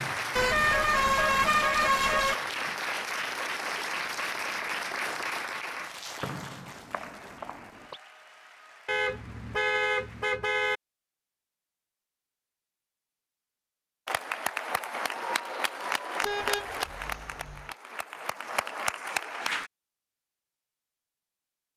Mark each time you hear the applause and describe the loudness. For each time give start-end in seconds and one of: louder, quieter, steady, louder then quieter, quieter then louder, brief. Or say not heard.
0.0-10.3 quieter
14.1-19.7 quieter then louder.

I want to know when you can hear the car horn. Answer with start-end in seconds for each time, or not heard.
0.3-2.4, 8.8-10.8, 16.2-17.7.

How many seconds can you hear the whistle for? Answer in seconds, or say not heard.
2 s.